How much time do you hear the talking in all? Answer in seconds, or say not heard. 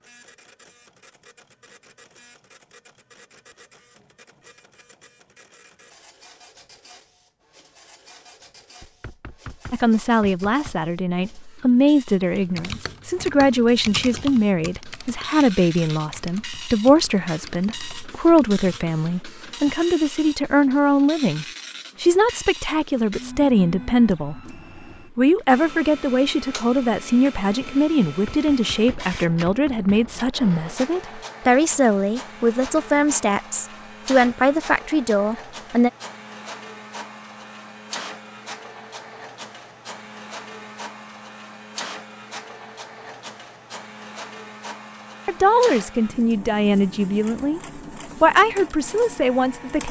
30 s.